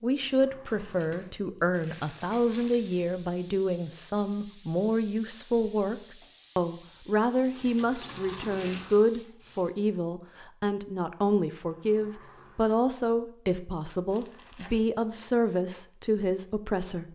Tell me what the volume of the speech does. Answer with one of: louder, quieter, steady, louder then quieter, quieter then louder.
steady.